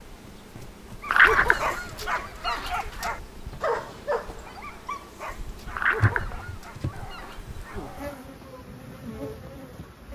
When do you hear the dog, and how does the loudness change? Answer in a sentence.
The dog can be heard from 1.0 to 8.4 s, getting quieter.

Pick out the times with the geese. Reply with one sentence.
The geese can be heard from 1.1 to 3.0 s and from 5.8 to 7.8 s.